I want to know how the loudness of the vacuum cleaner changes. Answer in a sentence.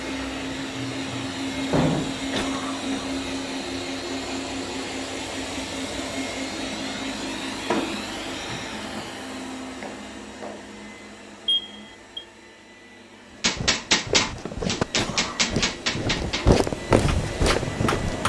The loudness of the vacuum cleaner goes down, then up.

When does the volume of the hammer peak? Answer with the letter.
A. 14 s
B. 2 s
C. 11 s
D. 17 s
A.